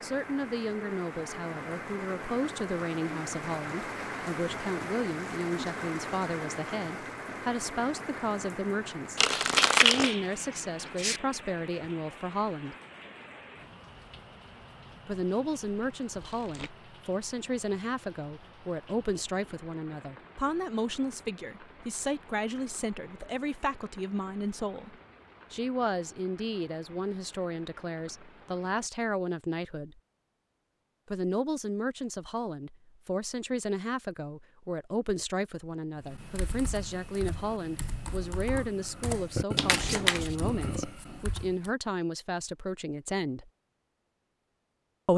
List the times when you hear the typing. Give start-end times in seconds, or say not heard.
36.0-41.7.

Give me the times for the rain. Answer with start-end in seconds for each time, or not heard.
0.0-28.9.